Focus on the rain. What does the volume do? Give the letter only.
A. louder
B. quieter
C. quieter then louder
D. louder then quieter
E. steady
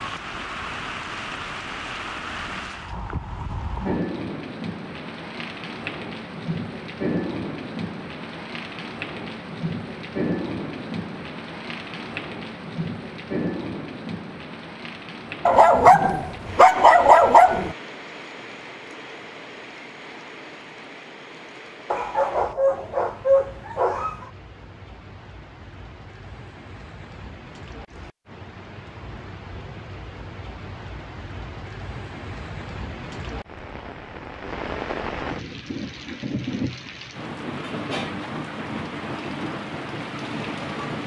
C.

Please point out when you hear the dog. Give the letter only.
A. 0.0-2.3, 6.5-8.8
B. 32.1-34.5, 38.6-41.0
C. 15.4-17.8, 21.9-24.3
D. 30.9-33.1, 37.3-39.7
C.